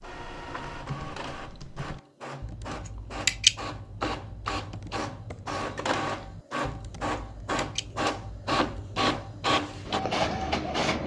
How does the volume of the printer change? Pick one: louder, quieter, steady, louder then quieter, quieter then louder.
louder.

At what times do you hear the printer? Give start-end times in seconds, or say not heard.
0.0-11.0.